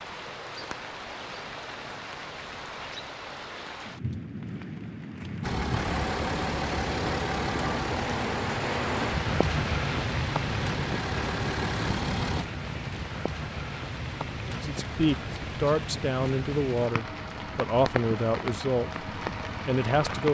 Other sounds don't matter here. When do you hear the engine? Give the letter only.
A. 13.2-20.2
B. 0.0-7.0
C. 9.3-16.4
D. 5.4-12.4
D.